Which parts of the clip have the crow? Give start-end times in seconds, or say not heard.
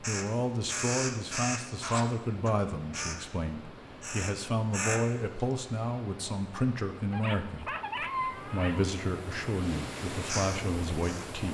0.0-3.2, 4.0-5.5, 10.2-11.3.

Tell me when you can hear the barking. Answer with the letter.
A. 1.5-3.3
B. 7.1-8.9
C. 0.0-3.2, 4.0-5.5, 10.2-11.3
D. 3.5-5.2
B.